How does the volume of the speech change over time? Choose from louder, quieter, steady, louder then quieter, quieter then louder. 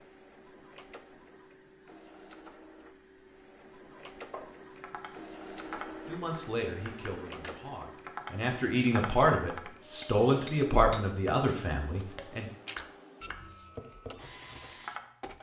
louder then quieter.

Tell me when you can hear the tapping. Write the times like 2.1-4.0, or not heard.
4.0-15.1.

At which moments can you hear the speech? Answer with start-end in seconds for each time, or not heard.
6.0-12.5.